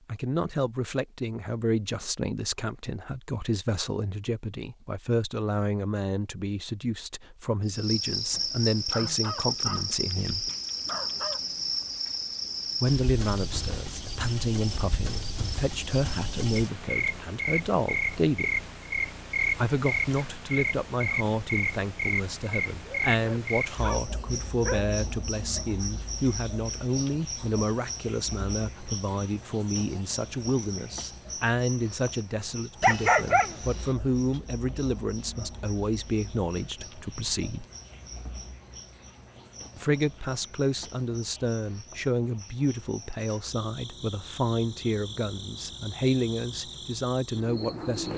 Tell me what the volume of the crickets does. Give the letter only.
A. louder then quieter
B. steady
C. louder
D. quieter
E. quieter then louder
D.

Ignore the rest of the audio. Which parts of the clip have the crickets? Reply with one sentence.
The crickets can be heard from 7.7 to 48.1 s.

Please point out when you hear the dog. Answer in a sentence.
You can hear the dog from 8.9 to 11.4 s, from 22.8 to 24.9 s and from 32.8 to 33.9 s.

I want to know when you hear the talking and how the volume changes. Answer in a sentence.
You can hear the talking from 0.1 to 10.5 s, at a steady volume; from 12.8 to 18.5 s, at a steady volume; from 19.6 to 37.6 s, at a steady volume; and from 39.8 to 48.1 s, at a steady volume.